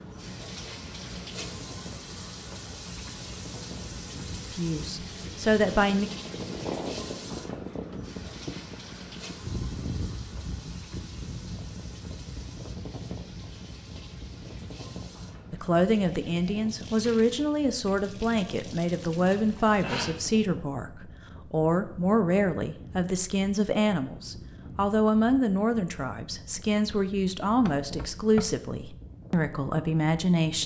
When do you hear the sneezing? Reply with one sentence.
You can hear the sneezing from 19.8 to 20.2 s.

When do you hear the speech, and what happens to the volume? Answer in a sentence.
The speech can be heard briefly from 4.5 to 6.1 s; and from 15.5 to 30.6 s, at a steady volume.